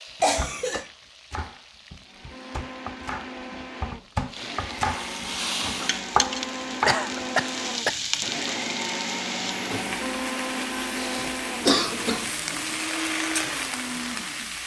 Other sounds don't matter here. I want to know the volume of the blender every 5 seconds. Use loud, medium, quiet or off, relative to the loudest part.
medium, loud, loud.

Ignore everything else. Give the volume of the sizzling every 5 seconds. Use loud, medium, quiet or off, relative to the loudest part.
quiet, loud, loud.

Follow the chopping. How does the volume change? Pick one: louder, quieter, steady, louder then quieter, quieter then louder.
louder.